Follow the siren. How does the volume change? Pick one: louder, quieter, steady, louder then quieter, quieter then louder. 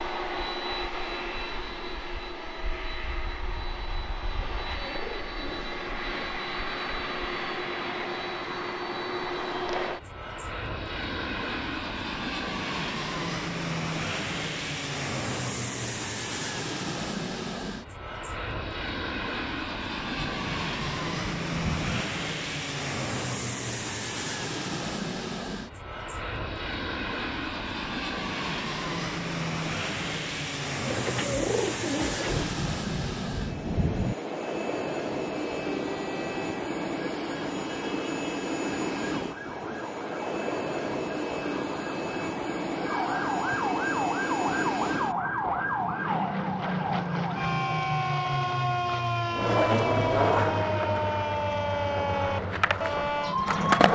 louder.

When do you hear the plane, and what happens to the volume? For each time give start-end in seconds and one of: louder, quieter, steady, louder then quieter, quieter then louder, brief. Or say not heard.
0.0-53.9 steady.